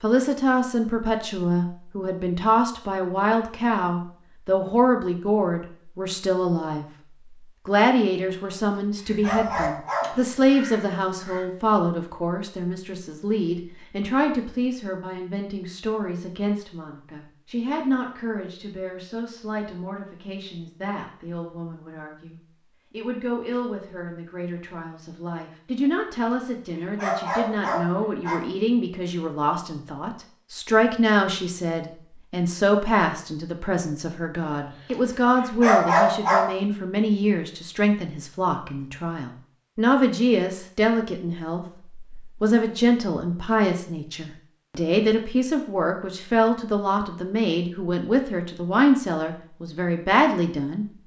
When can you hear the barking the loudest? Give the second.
36 s.